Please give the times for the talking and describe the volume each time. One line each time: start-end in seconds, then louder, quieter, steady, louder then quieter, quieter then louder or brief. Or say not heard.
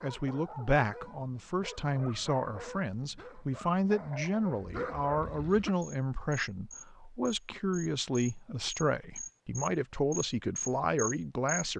0.0-11.7 steady.